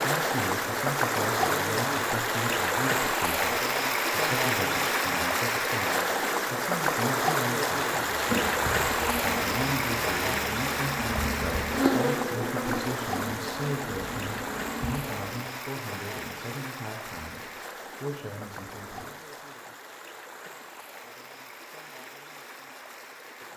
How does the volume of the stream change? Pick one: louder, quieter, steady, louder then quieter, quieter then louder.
quieter.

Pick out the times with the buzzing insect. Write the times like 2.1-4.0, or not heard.
7.9-15.4.